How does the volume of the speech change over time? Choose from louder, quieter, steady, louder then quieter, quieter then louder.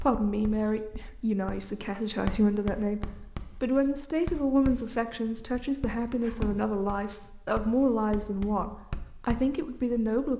steady.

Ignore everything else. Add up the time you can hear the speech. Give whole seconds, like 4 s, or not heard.
10 s.